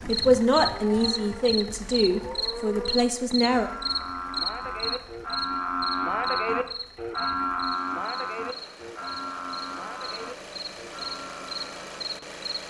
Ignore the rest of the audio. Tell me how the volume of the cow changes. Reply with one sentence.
The loudness of the cow goes up, then down.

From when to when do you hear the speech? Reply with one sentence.
The speech can be heard from 0.1 to 3.7 s.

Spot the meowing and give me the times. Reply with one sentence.
You can't hear the meowing here.